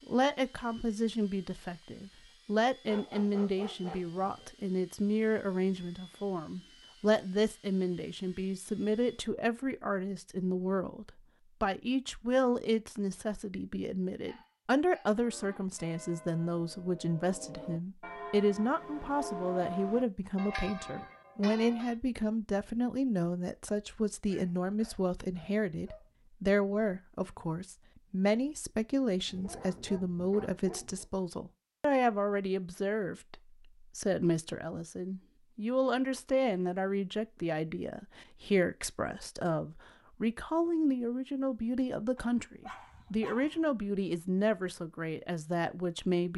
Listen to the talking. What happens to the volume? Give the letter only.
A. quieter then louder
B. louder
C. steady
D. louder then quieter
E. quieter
C.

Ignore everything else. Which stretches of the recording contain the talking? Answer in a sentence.
The talking can be heard from 0.1 to 46.3 s.